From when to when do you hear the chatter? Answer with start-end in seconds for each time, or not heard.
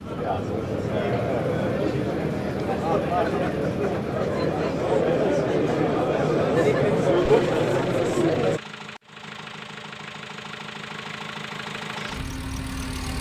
0.0-8.6.